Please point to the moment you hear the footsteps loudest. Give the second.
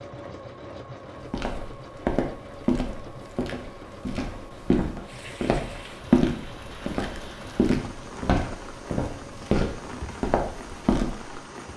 6 s.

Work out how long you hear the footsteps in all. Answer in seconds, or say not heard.
10 s.